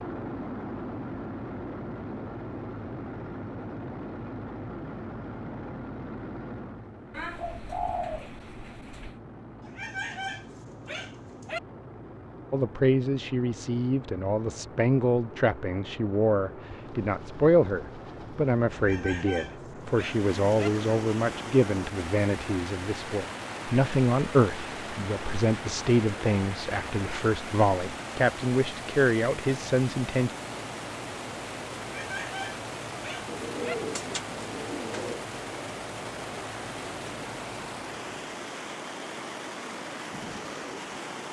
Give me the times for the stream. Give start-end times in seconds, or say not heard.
19.8-41.2.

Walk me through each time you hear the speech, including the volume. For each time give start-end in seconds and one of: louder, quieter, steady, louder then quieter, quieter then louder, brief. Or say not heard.
12.5-30.3 steady.